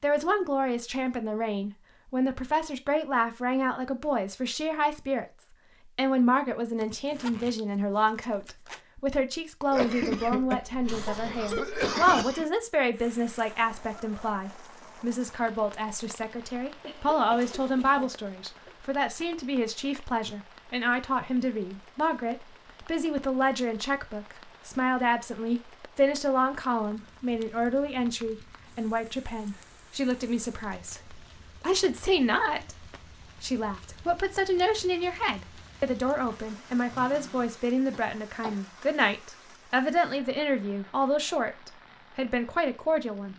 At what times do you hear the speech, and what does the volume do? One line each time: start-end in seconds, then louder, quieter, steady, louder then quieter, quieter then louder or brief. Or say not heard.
0.0-43.3 steady.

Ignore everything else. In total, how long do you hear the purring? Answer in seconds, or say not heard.
not heard.